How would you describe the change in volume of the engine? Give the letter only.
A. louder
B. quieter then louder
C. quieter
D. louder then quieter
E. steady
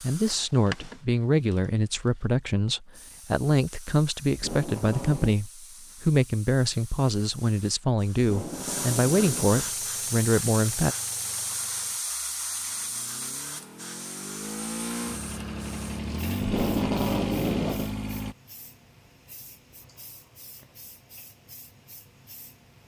B.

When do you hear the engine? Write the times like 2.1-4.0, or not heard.
9.6-18.4.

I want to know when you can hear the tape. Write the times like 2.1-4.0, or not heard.
4.3-5.3, 8.2-9.7, 16.4-17.9.